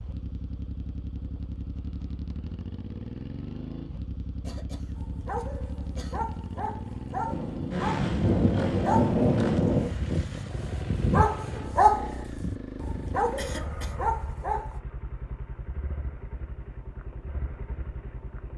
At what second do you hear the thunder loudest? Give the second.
9 s.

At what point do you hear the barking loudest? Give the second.
12 s.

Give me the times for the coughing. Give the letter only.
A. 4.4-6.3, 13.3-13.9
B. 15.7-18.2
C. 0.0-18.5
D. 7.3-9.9
A.